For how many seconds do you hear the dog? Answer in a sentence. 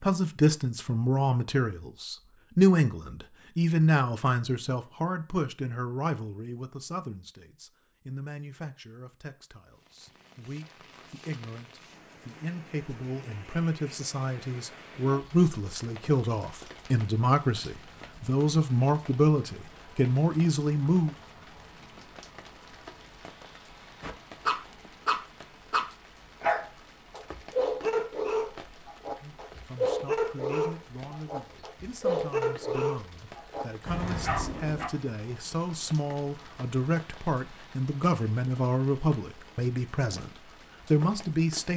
You can hear the dog for 11 seconds altogether.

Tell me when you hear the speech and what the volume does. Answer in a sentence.
The speech can be heard from 0.0 to 21.1 s, getting quieter then louder; and from 29.2 to 41.7 s, getting louder.